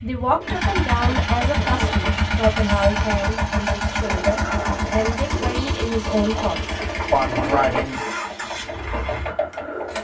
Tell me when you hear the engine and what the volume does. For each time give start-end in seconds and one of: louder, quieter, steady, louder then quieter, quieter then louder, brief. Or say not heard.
0.0-9.9 quieter.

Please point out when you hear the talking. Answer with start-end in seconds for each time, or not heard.
0.0-8.0.